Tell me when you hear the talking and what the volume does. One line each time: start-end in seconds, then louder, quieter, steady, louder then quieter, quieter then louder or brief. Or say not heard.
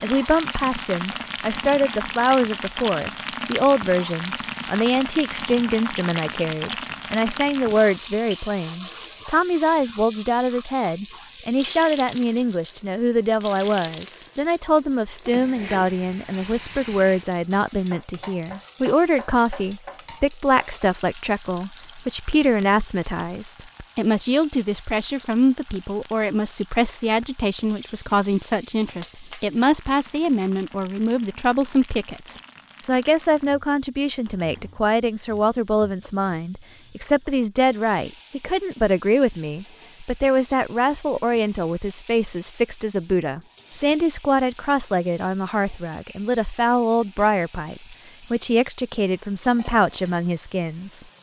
0.0-51.0 steady.